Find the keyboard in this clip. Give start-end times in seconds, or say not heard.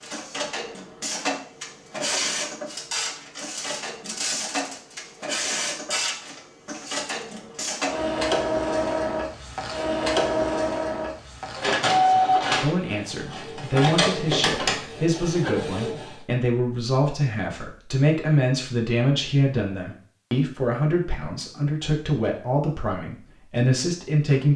not heard.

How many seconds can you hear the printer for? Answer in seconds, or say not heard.
16 s.